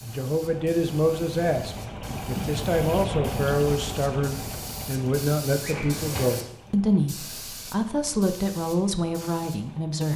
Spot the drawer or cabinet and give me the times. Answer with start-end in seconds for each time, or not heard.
2.0-2.6, 5.6-6.5.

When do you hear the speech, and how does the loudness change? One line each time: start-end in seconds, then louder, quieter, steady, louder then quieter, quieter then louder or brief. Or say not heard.
0.0-10.1 steady.